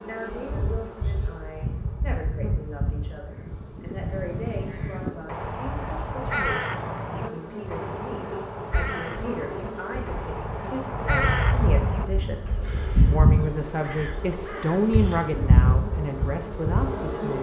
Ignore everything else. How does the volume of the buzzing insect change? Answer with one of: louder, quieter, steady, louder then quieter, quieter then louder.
quieter then louder.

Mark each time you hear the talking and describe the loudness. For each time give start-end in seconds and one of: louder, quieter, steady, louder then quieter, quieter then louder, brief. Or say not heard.
0.0-17.3 louder.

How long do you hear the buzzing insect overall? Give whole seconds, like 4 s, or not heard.
17 s.